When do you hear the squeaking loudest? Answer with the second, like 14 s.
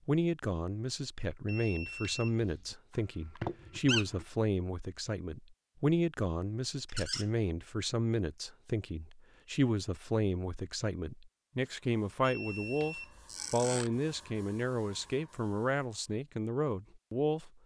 4 s.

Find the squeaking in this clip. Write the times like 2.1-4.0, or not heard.
2.9-4.2, 6.8-7.2, 13.2-13.9.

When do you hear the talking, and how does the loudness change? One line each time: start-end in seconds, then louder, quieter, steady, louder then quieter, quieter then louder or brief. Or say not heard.
0.1-17.5 steady.